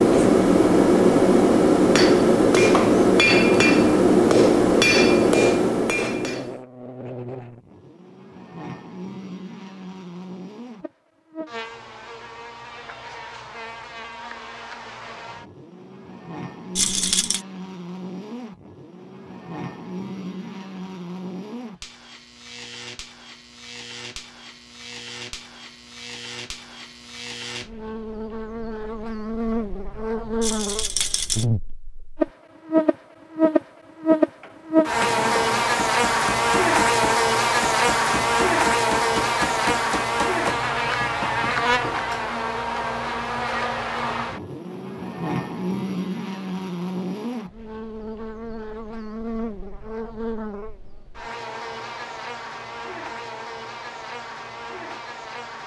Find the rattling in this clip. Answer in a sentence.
The rattling can be heard from 16.8 to 17.4 s and from 30.4 to 31.4 s.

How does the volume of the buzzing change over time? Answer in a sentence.
The loudness of the buzzing goes up, then down.